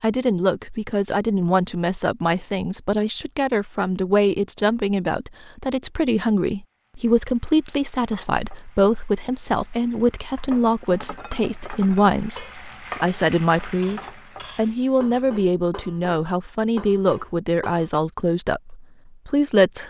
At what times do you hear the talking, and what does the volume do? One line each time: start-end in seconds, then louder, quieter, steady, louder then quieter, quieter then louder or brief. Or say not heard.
0.0-19.8 steady.